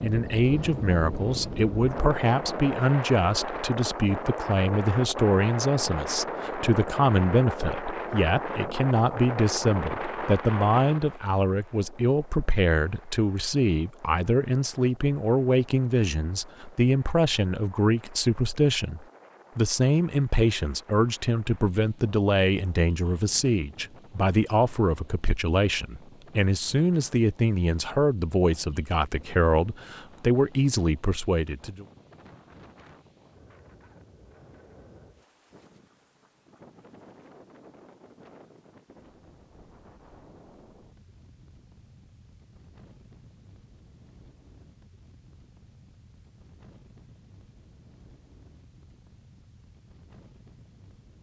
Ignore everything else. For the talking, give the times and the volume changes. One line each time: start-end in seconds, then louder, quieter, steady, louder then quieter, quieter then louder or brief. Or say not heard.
0.0-31.9 steady.